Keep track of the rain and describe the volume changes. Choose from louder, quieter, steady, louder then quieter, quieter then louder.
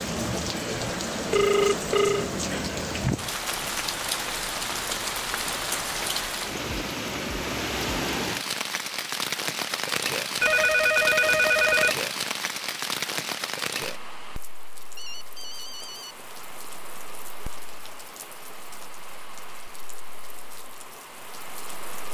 quieter.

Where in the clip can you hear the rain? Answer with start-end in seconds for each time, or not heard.
0.0-22.0.